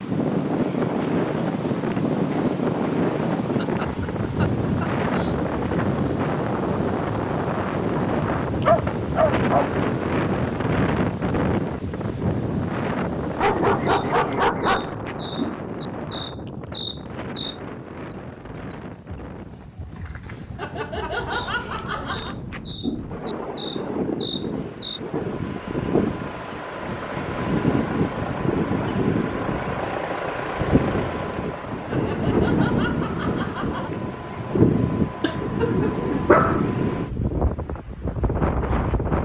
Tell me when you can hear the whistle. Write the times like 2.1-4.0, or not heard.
not heard.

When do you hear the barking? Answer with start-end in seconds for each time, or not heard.
8.0-9.8, 13.4-14.9, 35.2-36.6.